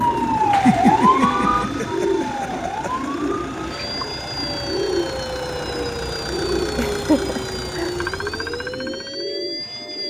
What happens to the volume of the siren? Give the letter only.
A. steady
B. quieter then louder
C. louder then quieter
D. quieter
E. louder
D.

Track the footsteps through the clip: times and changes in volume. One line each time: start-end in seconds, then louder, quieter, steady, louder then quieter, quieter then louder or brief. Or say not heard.
not heard.